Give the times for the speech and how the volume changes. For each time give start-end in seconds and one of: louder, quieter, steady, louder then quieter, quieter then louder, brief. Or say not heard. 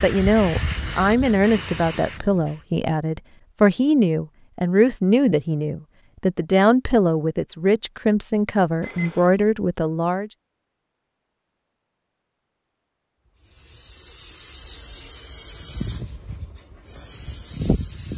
0.0-10.3 steady.